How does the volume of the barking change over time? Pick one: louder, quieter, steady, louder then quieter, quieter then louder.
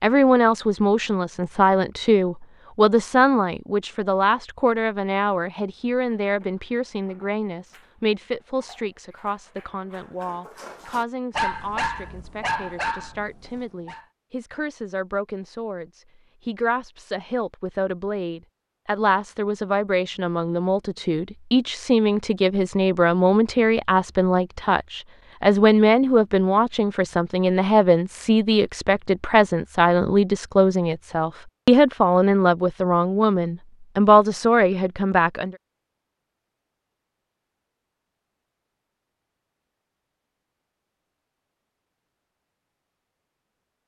louder.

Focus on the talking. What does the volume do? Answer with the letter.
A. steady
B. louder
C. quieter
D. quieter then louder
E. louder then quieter
D.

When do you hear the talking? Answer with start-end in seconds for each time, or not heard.
0.0-35.5.